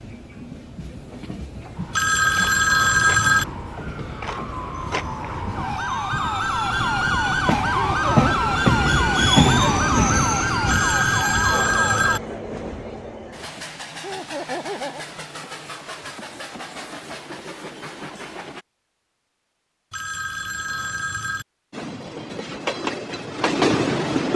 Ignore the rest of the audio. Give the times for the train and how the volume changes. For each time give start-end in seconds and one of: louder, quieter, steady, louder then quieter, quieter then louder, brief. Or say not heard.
0.0-18.6 louder then quieter
21.7-24.3 brief.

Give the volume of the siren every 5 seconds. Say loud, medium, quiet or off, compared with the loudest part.
medium, loud, loud, off, off.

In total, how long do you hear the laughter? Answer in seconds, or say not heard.
2 s.